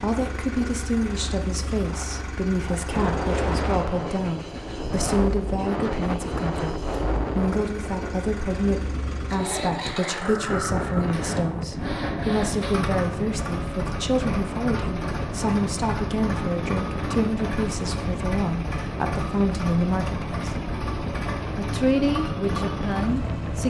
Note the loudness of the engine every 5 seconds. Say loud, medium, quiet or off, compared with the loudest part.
medium, medium, loud, loud, loud.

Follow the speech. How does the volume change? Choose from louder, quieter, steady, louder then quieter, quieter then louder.
steady.